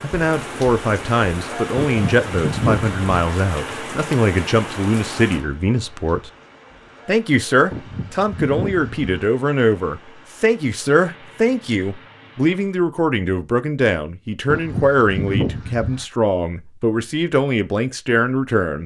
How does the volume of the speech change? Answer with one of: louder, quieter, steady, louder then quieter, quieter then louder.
steady.